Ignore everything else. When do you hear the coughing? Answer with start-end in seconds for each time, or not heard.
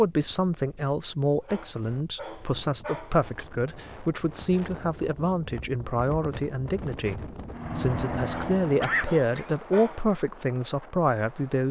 8.2-9.5.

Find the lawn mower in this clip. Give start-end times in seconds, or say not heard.
7.5-9.2.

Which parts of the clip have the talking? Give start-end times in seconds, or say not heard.
0.0-11.6.